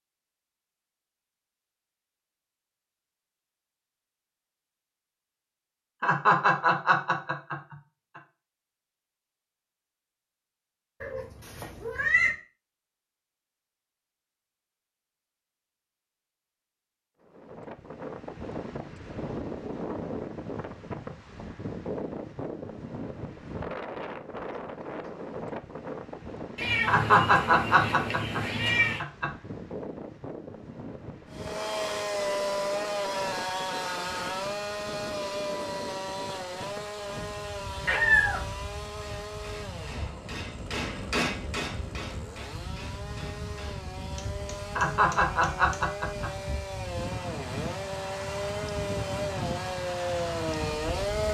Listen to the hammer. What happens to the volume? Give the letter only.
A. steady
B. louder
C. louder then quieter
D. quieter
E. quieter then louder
C.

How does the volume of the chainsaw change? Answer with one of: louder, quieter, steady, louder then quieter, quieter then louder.
quieter then louder.